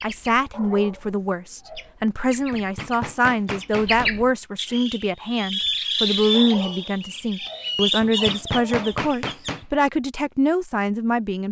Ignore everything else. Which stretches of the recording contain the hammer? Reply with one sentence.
The hammer can be heard from 2.5 to 4.1 s and from 8.0 to 9.7 s.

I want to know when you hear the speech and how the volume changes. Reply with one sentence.
The speech can be heard from 0.0 to 11.4 s, at a steady volume.